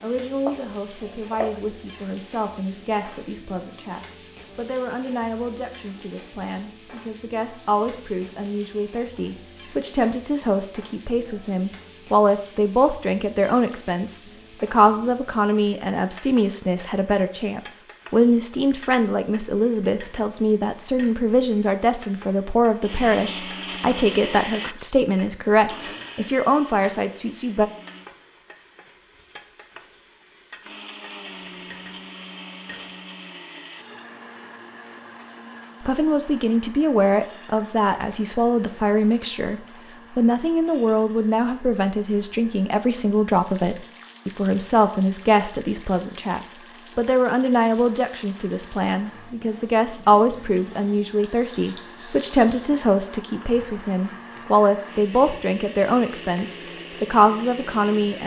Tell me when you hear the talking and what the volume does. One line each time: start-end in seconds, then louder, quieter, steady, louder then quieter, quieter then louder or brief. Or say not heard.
0.0-27.7 louder
35.8-58.2 steady.